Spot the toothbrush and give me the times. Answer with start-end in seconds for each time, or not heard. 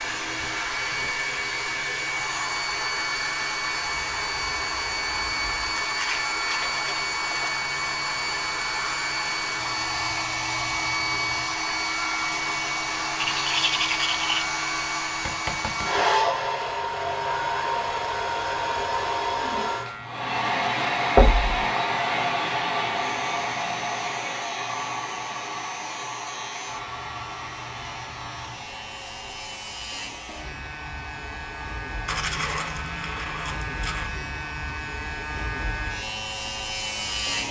5.9-7.6, 13.2-14.4, 32.0-34.1.